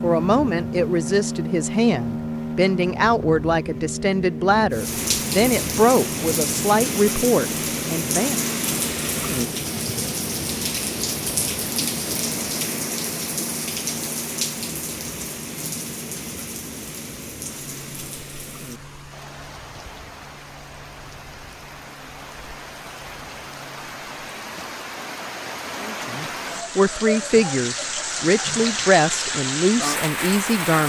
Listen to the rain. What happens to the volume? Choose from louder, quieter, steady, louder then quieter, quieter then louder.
quieter then louder.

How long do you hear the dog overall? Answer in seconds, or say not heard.
not heard.